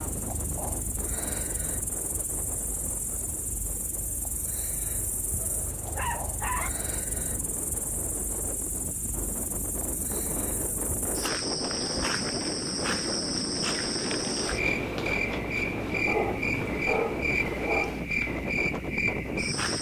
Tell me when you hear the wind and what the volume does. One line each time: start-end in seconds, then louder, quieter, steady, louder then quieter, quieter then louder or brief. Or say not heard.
0.0-19.7 louder.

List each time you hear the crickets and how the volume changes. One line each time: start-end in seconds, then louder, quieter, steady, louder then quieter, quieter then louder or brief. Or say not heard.
0.0-19.7 louder.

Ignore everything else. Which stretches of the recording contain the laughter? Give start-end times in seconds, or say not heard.
not heard.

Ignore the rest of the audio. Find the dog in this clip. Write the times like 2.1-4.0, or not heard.
5.4-6.7, 16.1-18.0.